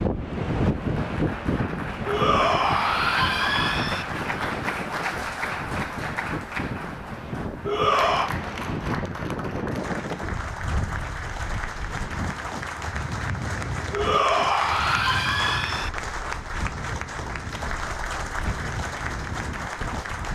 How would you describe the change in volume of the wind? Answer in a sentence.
The loudness of the wind goes down.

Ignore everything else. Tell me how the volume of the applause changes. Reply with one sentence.
The volume of the applause stays about the same.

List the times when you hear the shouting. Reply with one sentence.
The shouting can be heard from 2.0 to 4.0 s, from 7.7 to 8.3 s and from 13.9 to 15.9 s.